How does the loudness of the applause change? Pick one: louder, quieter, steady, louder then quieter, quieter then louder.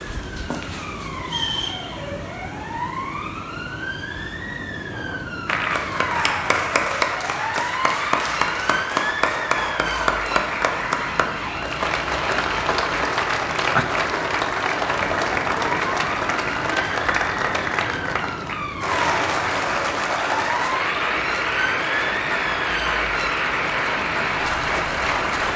steady.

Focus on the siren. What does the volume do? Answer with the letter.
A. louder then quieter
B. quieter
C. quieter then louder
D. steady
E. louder
D.